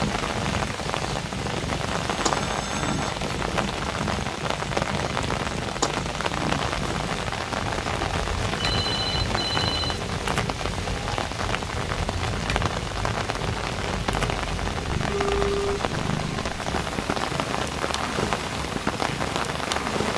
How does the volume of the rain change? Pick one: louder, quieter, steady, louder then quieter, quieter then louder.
steady.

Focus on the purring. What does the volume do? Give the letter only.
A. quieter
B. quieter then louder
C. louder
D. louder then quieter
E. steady
E.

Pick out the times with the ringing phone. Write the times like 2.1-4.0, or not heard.
2.3-3.1, 8.6-10.0, 15.1-15.8.